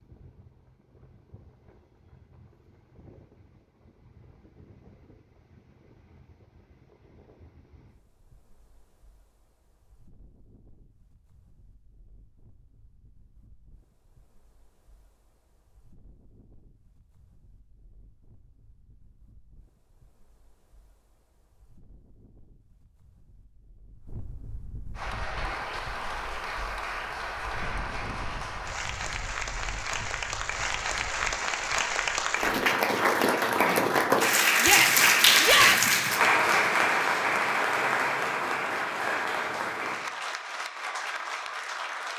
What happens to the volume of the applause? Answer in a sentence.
The volume of the applause goes up, then down.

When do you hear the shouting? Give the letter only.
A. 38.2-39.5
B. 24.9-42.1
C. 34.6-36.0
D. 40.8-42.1
C.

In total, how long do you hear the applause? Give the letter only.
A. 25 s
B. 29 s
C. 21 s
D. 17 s
D.